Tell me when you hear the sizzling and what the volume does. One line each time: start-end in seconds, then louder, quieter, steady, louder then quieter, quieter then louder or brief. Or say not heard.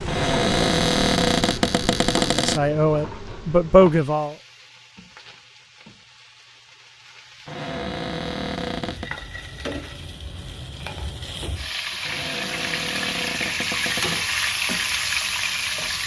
0.0-16.0 quieter then louder.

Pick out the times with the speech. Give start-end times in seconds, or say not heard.
2.3-4.3.